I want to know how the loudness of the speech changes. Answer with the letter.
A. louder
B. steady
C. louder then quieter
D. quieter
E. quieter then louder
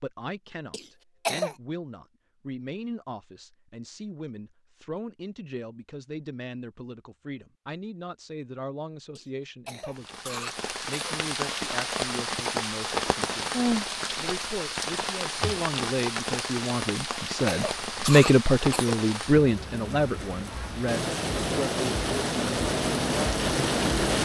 A.